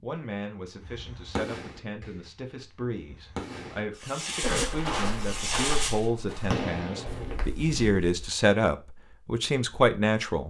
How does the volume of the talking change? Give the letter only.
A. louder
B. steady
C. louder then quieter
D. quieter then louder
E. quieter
A.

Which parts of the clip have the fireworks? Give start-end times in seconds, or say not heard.
0.8-7.5.